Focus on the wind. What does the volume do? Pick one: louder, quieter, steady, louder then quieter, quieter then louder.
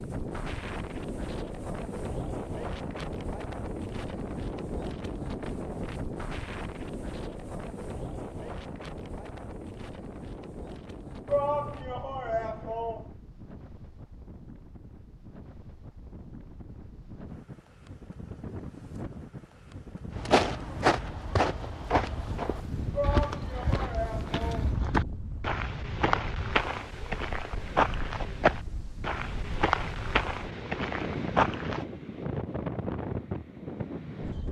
quieter then louder.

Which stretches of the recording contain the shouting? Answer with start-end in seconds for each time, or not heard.
11.2-13.1, 22.9-24.7.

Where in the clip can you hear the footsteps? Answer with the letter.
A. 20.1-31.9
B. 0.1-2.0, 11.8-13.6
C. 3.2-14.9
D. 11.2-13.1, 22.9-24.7
A.